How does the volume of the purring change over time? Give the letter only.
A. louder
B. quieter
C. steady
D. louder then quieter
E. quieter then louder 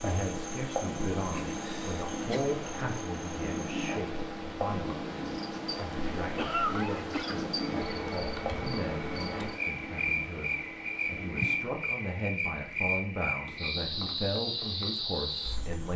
B.